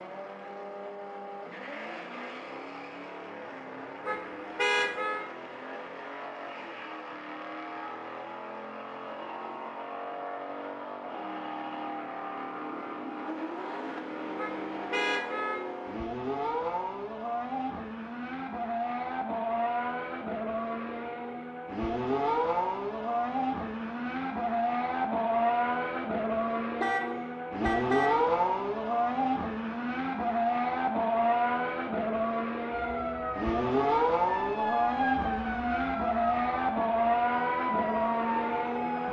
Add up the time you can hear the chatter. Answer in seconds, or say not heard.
not heard.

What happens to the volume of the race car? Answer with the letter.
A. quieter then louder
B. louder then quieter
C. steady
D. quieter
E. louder
E.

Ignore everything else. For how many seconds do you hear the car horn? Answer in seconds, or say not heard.
4 s.